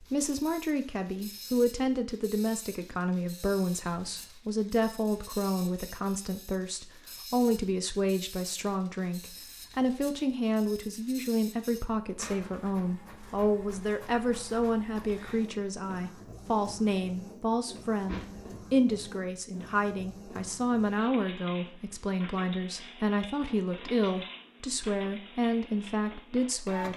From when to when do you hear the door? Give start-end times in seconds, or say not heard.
17.6-18.6.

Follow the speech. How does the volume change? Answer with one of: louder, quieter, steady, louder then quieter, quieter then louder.
steady.